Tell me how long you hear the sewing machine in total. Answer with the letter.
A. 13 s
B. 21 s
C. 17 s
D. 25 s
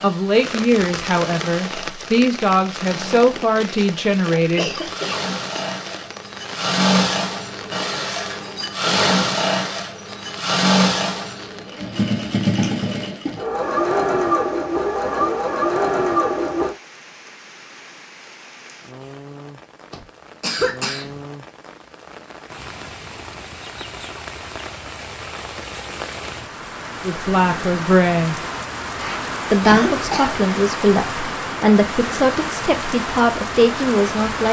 C.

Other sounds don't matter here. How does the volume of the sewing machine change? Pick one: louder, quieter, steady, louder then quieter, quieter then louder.
louder.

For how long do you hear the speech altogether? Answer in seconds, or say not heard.
11 s.